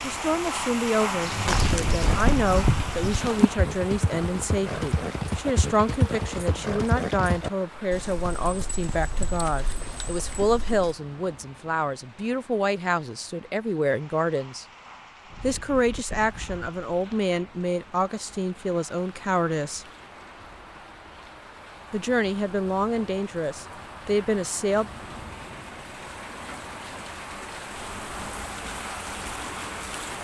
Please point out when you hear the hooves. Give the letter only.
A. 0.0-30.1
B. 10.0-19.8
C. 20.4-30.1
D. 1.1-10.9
D.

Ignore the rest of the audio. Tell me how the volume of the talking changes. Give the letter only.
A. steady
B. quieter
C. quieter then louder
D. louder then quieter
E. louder
A.